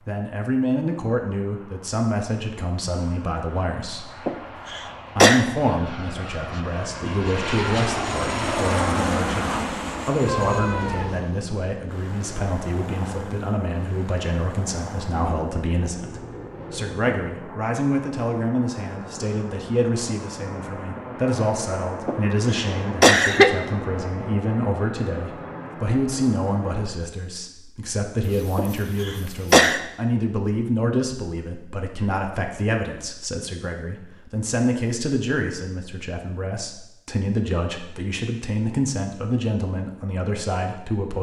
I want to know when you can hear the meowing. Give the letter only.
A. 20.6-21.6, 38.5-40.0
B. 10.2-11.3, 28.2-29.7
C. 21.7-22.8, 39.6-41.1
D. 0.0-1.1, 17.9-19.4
B.